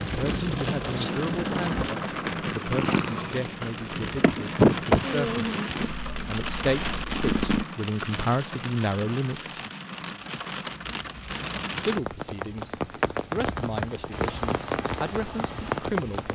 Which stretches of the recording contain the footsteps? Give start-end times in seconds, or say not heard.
not heard.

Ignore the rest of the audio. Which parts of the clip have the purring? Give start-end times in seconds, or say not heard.
0.0-7.7.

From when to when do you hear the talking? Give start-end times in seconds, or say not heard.
0.1-5.4, 6.2-9.6, 11.8-16.3.